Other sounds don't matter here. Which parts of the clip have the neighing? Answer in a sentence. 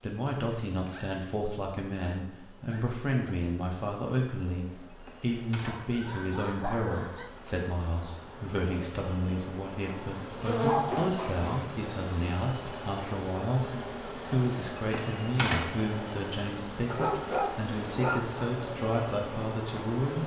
The neighing can't be heard in this clip.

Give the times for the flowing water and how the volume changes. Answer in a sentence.
The flowing water can't be heard in this clip.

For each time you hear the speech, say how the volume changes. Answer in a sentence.
You can hear the speech from 0.0 to 20.2 s, at a steady volume.